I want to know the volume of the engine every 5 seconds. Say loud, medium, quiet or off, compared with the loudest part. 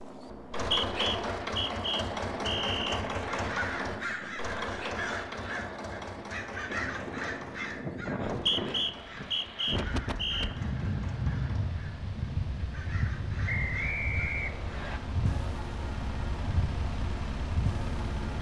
loud, medium, quiet, medium.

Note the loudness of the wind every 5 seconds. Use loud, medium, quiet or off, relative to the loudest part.
medium, loud, loud, loud.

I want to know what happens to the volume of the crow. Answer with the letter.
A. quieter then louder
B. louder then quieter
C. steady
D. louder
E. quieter
E.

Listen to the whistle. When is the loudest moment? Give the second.
9 s.